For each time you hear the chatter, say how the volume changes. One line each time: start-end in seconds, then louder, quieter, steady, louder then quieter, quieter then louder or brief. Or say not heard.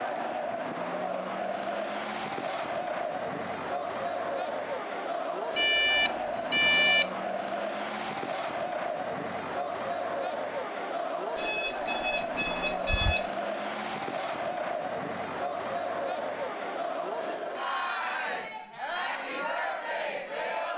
0.0-20.7 steady.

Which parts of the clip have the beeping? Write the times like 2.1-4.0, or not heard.
5.5-7.1, 11.3-13.3.